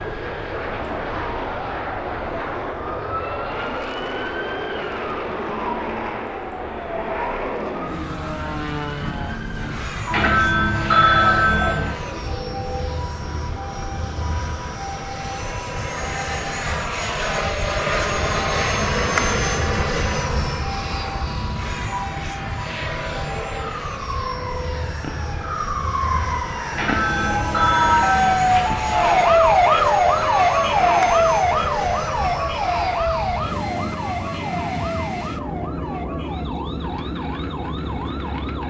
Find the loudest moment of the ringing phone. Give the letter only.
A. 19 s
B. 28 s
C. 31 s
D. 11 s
D.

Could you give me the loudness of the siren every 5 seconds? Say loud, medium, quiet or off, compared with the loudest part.
quiet, quiet, quiet, quiet, quiet, loud, loud, quiet.